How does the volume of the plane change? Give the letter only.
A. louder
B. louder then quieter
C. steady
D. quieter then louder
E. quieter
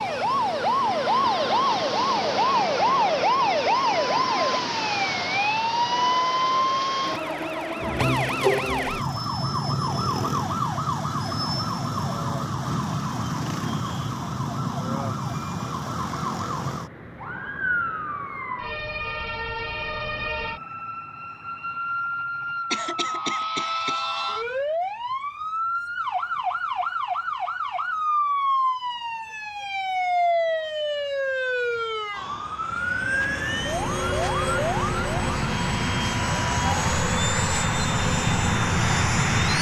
A.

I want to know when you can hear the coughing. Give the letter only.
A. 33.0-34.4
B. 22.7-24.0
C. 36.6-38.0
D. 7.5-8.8
B.